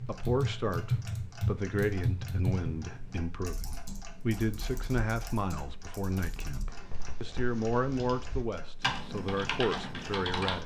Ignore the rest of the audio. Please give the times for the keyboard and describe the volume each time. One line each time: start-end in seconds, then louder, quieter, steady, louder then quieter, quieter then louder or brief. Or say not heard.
0.0-10.6 quieter then louder.